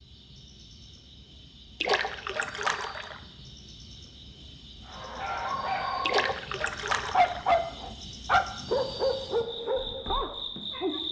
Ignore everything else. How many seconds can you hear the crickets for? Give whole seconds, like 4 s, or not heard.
11 s.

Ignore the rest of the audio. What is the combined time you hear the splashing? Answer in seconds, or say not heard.
3 s.